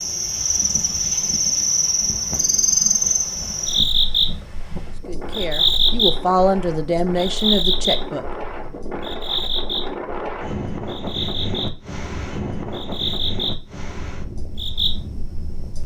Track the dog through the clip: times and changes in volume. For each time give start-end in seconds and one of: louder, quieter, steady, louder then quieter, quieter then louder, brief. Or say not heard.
not heard.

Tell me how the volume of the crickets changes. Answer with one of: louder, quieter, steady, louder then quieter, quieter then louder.
quieter.